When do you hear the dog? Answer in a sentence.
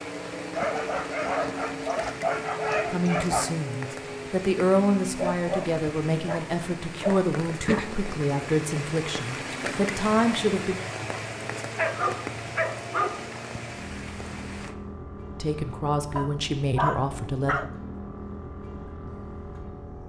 The dog can be heard from 0.6 to 3.5 s, from 5.2 to 8.0 s, from 11.8 to 13.3 s and from 16.1 to 17.7 s.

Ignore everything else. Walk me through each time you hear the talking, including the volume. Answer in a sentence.
You can hear the talking from 2.9 to 10.8 s, at a steady volume; and briefly from 15.4 to 17.6 s.